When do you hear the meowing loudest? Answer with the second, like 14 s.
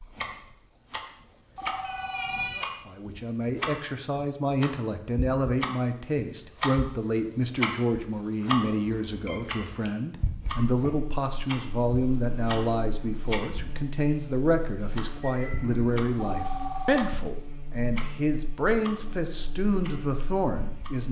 2 s.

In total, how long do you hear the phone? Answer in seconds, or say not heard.
2 s.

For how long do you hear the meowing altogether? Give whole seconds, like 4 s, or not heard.
2 s.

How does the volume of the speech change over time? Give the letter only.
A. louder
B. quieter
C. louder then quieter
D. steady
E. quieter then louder
D.